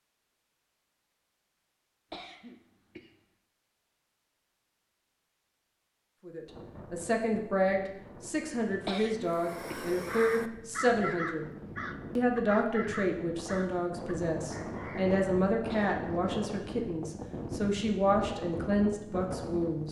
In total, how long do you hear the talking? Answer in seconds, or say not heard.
13 s.